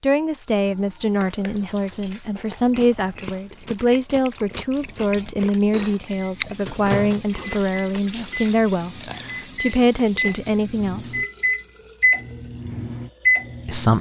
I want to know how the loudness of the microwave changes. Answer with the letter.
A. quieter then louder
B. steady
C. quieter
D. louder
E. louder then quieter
A.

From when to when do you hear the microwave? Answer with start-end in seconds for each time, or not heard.
6.1-13.9.